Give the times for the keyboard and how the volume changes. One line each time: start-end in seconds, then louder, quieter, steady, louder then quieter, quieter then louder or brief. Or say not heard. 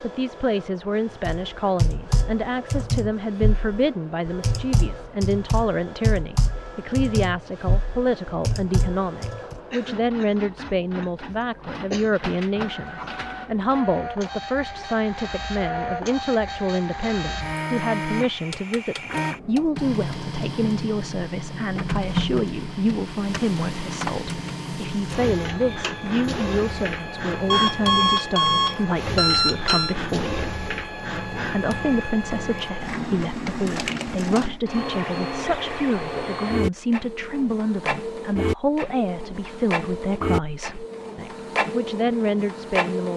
1.2-9.6 steady.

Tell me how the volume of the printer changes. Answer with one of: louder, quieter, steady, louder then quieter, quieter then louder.
louder.